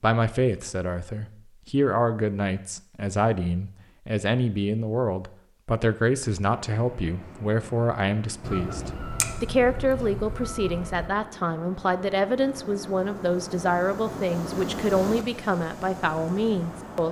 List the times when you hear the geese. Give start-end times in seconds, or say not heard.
8.4-11.1.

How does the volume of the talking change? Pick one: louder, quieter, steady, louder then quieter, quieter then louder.
steady.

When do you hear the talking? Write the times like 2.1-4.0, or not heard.
0.0-17.0.